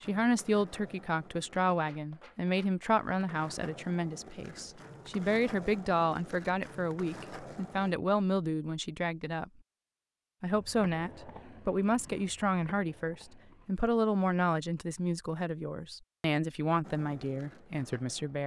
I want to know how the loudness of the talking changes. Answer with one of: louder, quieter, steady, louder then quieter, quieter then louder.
steady.